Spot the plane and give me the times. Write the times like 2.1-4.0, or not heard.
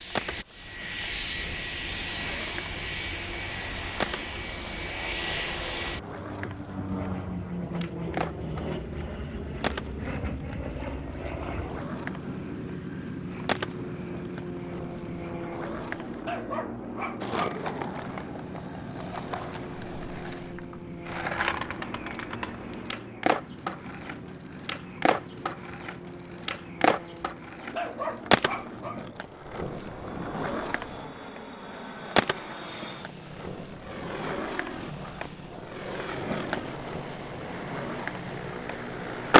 0.0-39.3.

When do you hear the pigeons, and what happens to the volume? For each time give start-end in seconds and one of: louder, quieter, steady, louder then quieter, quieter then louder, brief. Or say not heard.
not heard.